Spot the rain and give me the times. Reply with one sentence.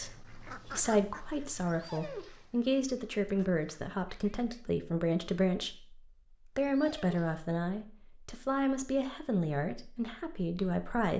The rain can't be heard in this clip.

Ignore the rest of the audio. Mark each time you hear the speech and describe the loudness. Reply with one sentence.
You can hear the speech from 0.0 to 11.1 s, at a steady volume.